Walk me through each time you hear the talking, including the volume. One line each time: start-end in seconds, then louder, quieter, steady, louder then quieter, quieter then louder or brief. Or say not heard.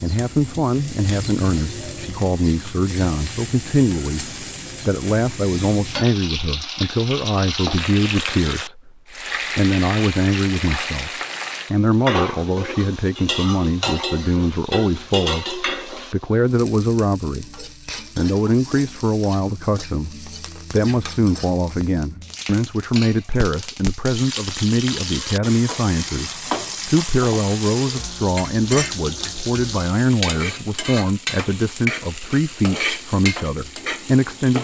0.0-8.9 steady
9.6-34.5 steady.